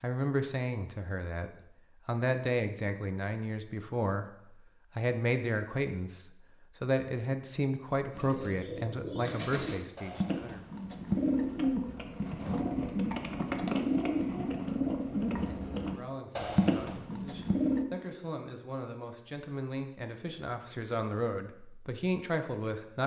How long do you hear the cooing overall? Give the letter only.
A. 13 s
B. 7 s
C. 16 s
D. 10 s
D.